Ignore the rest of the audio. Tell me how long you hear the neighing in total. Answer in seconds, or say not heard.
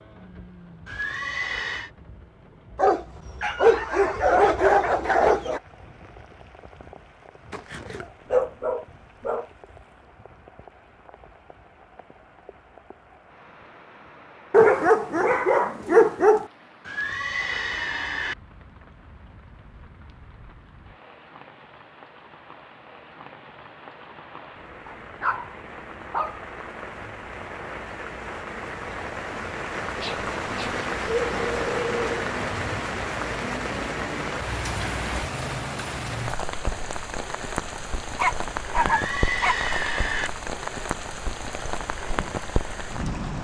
4 s.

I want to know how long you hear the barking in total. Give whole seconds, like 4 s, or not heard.
12 s.